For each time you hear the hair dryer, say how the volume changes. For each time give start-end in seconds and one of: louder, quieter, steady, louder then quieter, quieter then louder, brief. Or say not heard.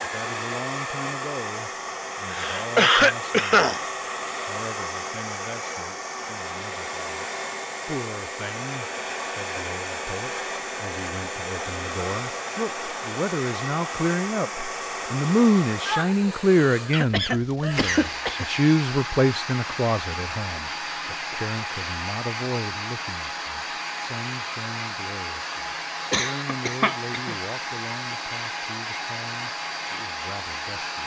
0.0-31.0 steady.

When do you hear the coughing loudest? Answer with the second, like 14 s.
3 s.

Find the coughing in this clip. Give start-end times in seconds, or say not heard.
2.3-3.9, 16.9-18.4, 26.1-27.4.